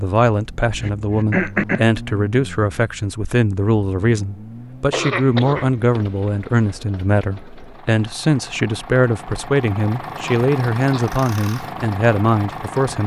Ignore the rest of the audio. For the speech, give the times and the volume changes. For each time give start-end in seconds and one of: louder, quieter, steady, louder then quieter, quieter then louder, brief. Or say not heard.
0.0-13.0 steady.